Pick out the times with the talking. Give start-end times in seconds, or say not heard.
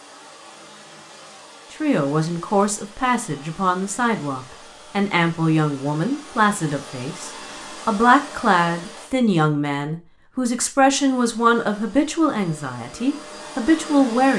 1.7-14.3.